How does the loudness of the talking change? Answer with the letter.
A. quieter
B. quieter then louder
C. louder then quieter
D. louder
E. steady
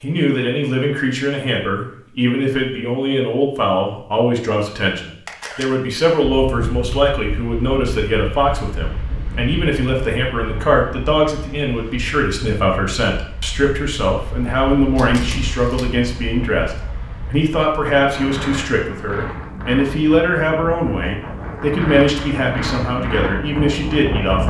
E.